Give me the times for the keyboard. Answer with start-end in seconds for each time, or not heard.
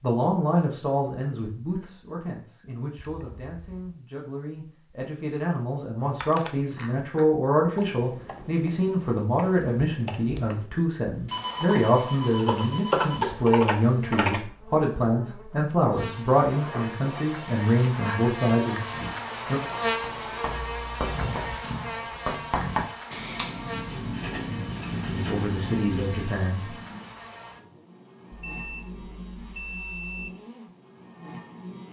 6.2-14.4.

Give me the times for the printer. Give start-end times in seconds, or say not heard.
not heard.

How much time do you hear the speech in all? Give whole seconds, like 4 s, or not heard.
21 s.